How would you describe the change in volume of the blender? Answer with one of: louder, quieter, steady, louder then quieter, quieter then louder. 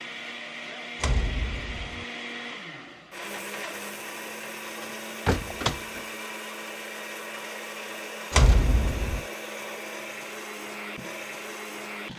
steady.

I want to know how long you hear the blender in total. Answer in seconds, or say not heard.
12 s.